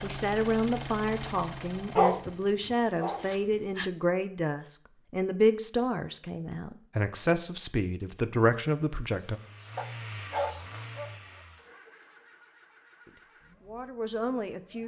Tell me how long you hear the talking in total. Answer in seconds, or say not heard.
11 s.